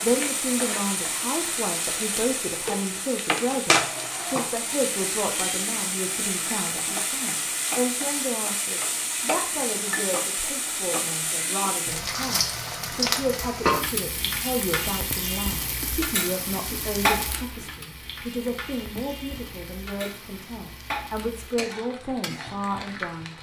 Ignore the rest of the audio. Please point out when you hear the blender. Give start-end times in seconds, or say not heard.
not heard.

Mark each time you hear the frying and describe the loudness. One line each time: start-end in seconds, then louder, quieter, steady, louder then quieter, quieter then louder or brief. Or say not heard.
0.0-23.3 quieter.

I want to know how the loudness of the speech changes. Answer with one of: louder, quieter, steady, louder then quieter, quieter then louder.
steady.